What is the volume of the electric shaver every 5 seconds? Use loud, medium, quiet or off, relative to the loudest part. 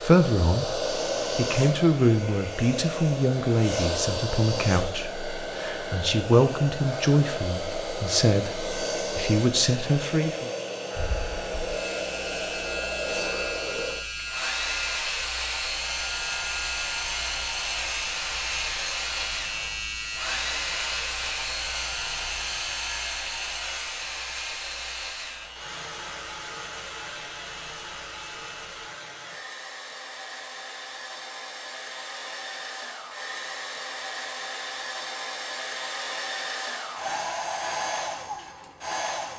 off, off, loud, loud, loud, medium, off, off.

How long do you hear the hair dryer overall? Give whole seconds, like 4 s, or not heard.
39 s.